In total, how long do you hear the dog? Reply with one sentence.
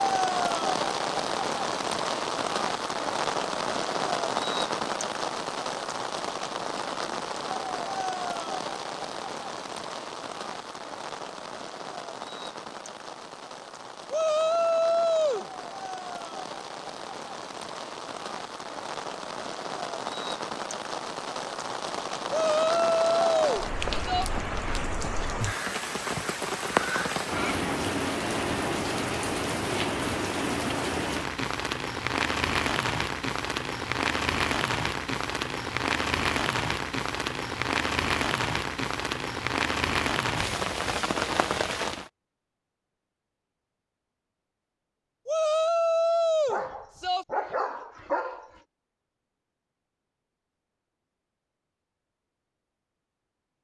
You can hear the dog for 2 seconds altogether.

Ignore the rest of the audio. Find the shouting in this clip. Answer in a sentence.
You can hear the shouting from 14.1 to 15.4 s, from 22.3 to 24.3 s and from 45.2 to 47.2 s.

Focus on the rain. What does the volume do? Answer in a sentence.
The loudness of the rain goes down, then up.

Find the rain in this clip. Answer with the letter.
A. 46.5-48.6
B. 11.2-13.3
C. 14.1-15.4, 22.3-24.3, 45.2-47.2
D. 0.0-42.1
D.